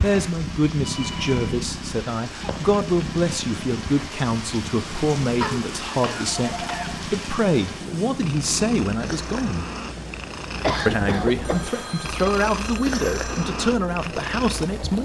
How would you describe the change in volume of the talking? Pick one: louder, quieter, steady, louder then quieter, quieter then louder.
steady.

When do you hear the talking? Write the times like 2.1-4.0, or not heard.
0.0-9.7, 10.8-15.0.